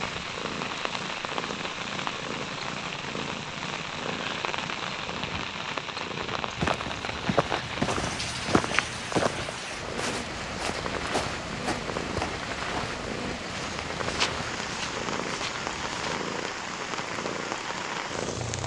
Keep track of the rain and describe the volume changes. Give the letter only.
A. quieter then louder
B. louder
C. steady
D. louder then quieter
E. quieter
C.